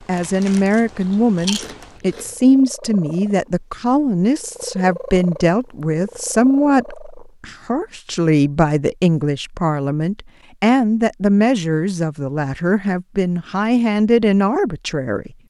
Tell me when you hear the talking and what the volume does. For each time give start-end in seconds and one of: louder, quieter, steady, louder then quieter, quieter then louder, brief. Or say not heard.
0.1-15.3 steady.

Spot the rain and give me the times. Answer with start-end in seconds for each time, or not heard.
not heard.